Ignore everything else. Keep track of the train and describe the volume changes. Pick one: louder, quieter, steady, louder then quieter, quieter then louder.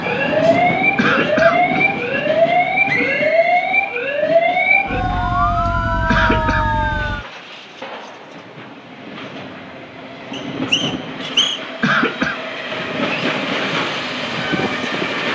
quieter then louder.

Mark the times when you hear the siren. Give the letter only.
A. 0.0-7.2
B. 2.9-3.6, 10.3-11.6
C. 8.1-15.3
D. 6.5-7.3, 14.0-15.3
A.